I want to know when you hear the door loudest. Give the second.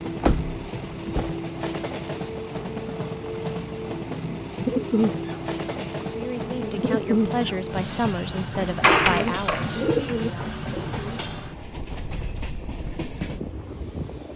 9 s.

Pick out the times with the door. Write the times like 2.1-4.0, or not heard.
0.2-1.4, 8.6-10.2.